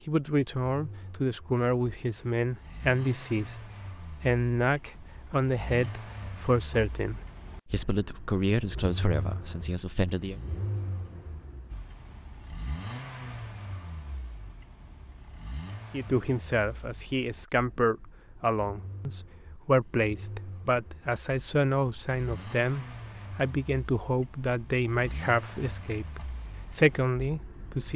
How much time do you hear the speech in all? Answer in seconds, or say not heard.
22 s.